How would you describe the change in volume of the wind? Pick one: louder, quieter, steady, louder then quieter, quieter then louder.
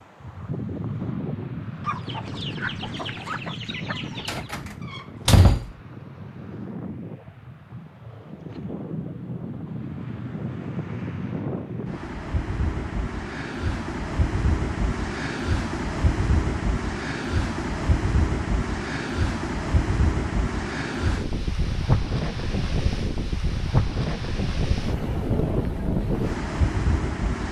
louder.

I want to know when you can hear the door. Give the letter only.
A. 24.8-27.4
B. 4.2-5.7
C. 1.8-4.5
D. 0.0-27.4
B.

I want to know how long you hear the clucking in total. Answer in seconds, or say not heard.
3 s.